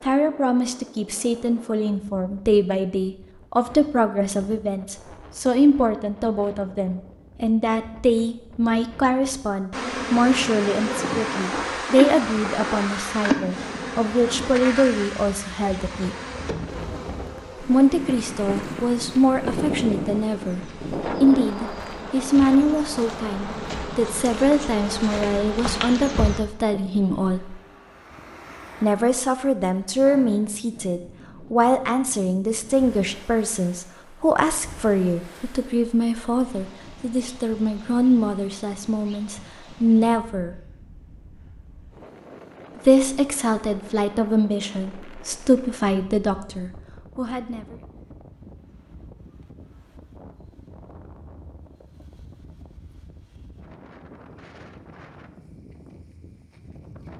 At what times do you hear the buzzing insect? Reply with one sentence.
The buzzing insect can be heard from 9.7 to 26.4 s.